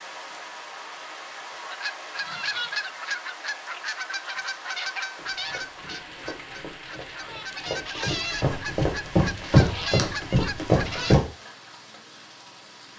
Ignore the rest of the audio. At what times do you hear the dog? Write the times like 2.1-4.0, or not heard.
not heard.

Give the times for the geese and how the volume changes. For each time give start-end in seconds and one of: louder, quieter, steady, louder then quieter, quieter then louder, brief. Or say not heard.
1.6-11.2 quieter then louder.